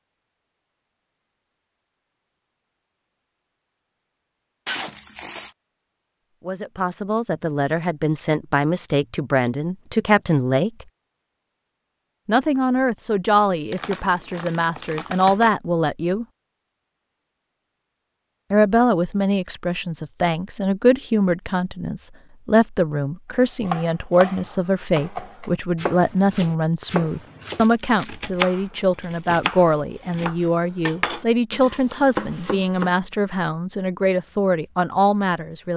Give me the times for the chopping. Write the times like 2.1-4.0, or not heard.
23.6-33.0.